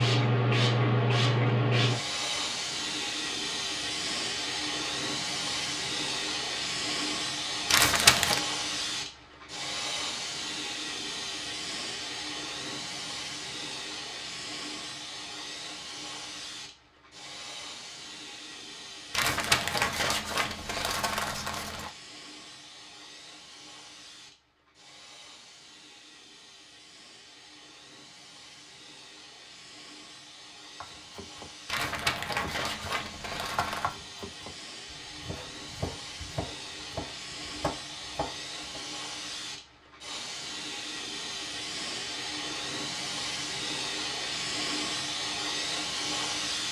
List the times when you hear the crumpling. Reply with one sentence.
The crumpling can be heard from 7.7 to 8.4 s, from 19.1 to 21.9 s and from 31.6 to 34.0 s.